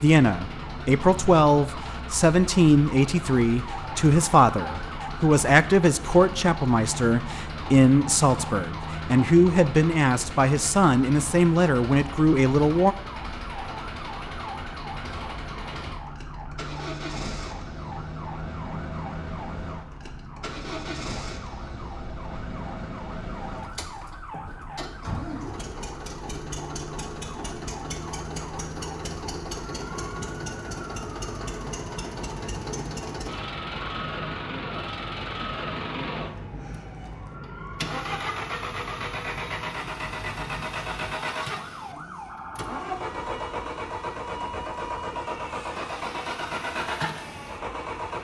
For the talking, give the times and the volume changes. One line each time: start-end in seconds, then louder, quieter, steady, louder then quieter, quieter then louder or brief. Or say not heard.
0.0-12.9 steady.